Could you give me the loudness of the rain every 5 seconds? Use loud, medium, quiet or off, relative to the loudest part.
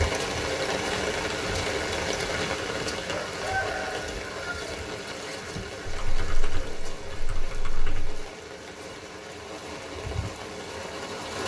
loud, medium, medium.